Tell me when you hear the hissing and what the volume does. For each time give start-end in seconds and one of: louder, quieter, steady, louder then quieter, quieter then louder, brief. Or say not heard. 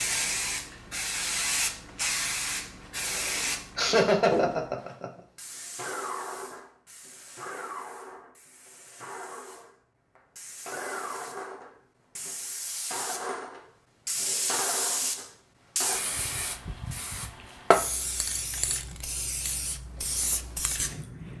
0.0-21.3 quieter then louder.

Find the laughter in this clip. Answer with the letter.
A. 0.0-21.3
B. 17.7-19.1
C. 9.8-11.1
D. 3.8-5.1
D.